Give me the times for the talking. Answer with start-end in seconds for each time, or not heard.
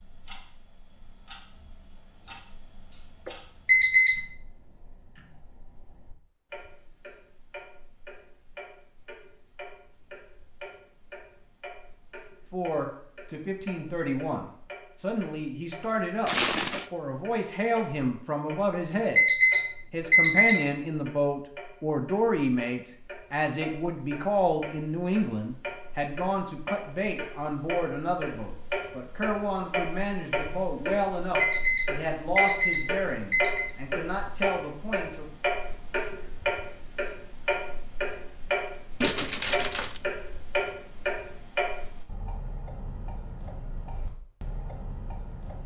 12.5-16.3, 16.9-19.2, 19.9-35.3.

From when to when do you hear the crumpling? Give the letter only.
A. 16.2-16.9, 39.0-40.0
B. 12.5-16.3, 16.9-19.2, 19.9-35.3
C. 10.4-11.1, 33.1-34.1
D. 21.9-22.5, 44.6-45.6
A.